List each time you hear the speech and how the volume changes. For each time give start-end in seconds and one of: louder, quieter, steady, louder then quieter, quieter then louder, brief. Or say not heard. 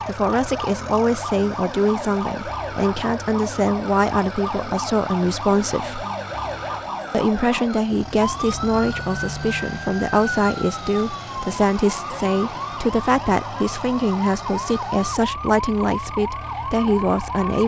0.1-6.0 steady
7.1-17.6 steady.